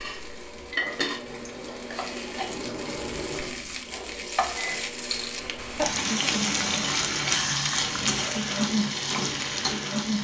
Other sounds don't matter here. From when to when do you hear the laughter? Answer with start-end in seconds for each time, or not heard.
not heard.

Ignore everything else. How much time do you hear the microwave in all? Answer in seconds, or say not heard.
10 s.